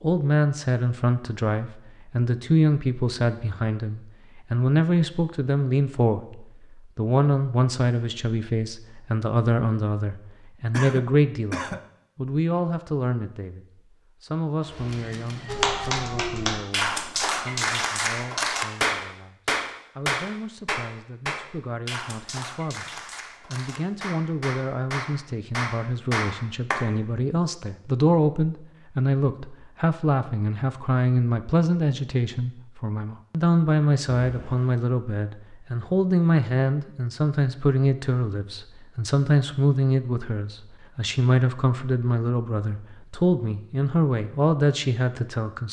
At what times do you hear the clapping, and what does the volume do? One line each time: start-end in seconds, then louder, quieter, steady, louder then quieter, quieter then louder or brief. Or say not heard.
15.4-26.9 quieter then louder.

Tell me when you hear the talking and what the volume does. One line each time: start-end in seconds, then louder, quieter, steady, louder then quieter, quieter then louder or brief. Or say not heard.
0.0-45.6 quieter then louder.